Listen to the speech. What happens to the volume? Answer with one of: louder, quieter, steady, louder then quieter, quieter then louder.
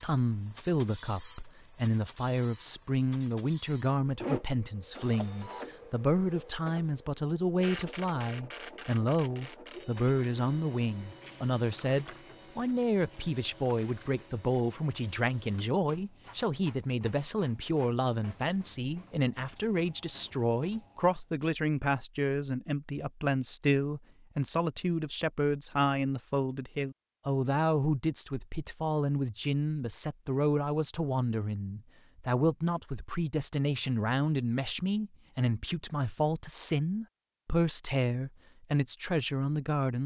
steady.